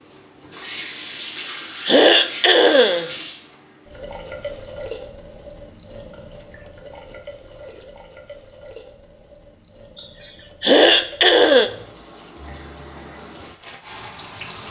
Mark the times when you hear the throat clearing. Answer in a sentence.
You can hear the throat clearing from 1.9 to 3.1 s and from 9.9 to 11.7 s.